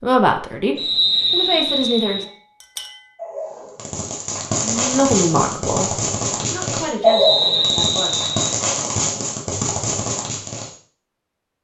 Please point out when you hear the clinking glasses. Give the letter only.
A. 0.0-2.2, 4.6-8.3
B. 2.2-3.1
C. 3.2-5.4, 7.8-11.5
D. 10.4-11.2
B.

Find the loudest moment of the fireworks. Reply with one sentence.
The volume of the fireworks peaks at 7 seconds.